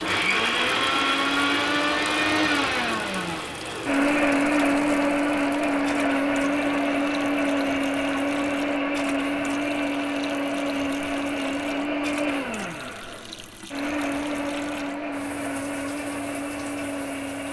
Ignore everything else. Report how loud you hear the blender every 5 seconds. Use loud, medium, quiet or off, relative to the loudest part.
loud, loud, medium, medium.